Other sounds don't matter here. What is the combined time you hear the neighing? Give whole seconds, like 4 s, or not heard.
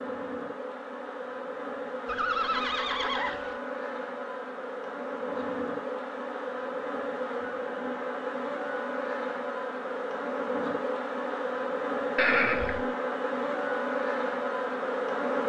2 s.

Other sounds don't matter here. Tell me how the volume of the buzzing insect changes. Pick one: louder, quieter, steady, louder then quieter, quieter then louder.
louder.